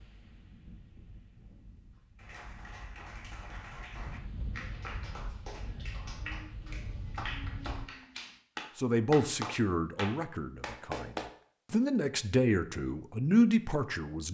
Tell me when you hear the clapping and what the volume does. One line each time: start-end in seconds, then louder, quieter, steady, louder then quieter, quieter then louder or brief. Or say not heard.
2.1-11.3 louder.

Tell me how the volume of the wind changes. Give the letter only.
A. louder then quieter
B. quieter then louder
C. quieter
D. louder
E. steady
D.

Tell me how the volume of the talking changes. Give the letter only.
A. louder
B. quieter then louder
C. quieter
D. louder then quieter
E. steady
B.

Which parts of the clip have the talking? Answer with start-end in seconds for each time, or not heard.
8.8-14.2.